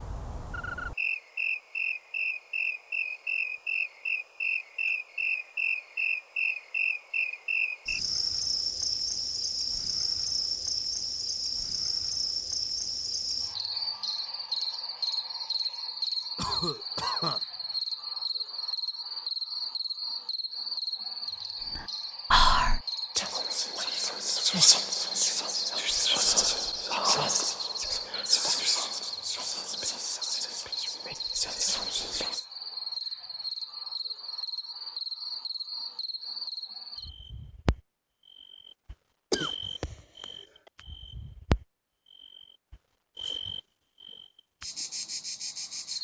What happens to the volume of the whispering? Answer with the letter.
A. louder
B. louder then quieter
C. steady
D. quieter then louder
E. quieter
E.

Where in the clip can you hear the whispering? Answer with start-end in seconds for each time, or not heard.
21.8-32.5.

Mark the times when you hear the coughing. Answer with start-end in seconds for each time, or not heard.
16.4-17.4, 39.3-40.2.